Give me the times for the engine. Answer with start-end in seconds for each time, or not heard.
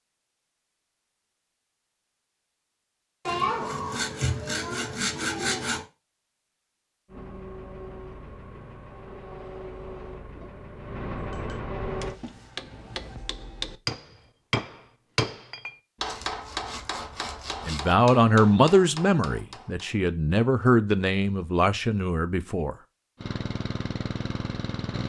7.0-12.2, 23.2-25.0.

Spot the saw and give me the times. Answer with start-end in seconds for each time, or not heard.
3.2-5.8, 16.0-17.9.